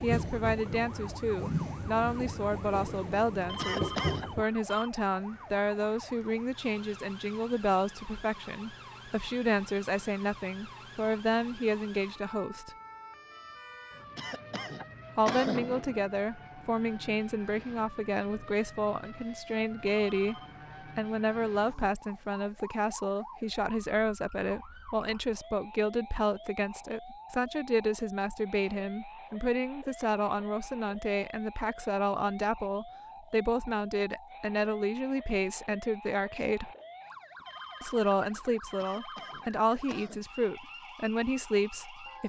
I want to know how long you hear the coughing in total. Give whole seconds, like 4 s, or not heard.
4 s.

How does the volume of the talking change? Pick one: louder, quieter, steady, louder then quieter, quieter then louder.
steady.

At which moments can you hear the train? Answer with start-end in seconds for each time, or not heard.
0.0-4.5.